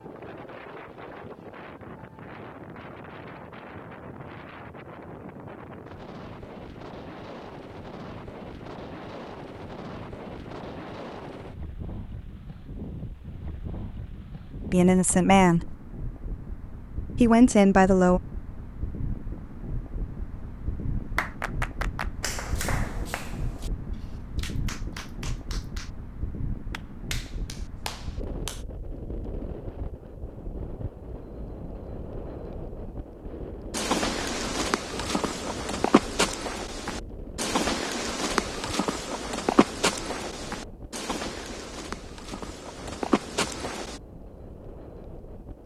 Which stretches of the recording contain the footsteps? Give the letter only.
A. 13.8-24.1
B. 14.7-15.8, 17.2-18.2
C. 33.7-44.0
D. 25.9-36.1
C.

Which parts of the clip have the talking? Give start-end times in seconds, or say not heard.
14.7-15.8, 17.2-18.2.